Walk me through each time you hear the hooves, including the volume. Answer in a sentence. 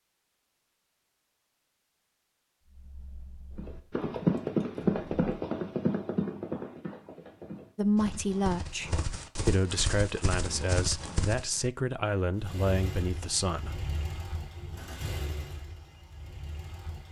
You can hear the hooves from 3.5 to 11.4 s, getting quieter then louder.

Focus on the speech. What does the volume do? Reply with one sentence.
The volume of the speech stays about the same.